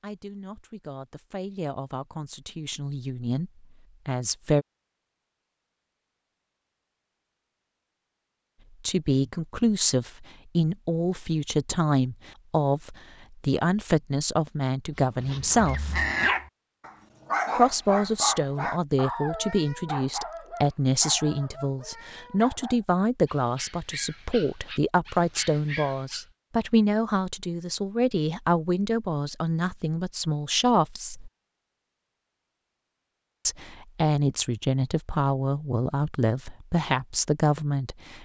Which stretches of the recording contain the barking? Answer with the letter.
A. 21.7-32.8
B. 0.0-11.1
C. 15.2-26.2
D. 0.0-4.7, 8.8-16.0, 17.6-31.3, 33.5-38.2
C.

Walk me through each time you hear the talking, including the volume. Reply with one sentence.
You can hear the talking from 0.0 to 4.7 s, getting louder; from 8.8 to 16.0 s, at a steady volume; from 17.6 to 31.3 s, at a steady volume; and from 33.5 to 38.2 s, at a steady volume.